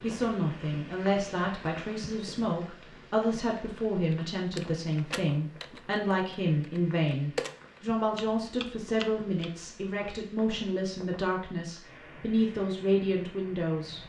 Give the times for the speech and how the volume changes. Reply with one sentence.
You can hear the speech from 0.0 to 14.0 s, at a steady volume.